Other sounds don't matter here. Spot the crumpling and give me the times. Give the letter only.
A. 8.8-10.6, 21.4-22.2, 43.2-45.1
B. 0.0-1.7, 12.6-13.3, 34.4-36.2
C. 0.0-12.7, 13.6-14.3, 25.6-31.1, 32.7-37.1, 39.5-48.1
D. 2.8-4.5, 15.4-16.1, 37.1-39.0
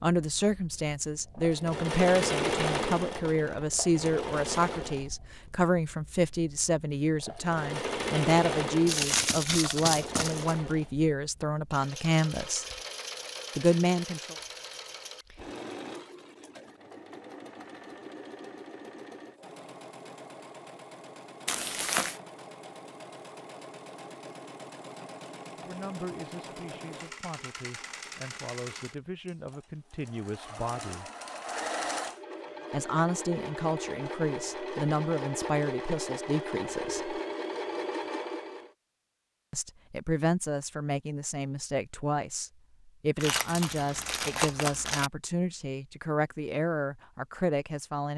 A.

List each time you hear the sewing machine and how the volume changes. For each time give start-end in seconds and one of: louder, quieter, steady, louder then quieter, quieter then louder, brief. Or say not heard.
0.1-38.7 quieter then louder.